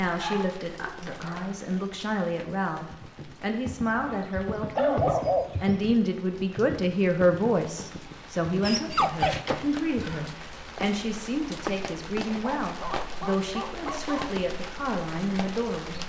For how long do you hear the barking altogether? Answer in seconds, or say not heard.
7 s.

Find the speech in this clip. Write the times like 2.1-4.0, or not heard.
0.0-16.0.